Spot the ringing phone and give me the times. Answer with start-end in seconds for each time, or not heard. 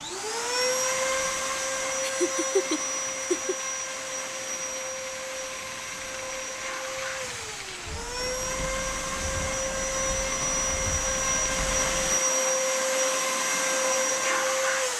not heard.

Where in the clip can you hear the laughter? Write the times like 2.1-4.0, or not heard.
2.0-3.5.